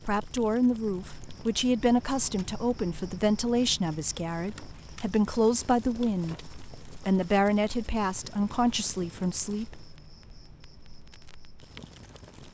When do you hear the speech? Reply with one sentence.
You can hear the speech from 0.1 to 9.8 s.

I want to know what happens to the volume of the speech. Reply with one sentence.
The volume of the speech stays about the same.